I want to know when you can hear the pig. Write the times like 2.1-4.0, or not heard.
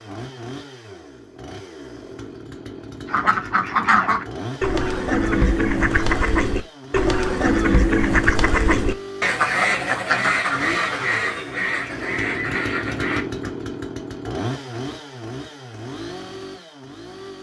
not heard.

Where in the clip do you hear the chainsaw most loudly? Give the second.
13 s.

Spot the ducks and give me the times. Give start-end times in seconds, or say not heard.
3.0-13.5.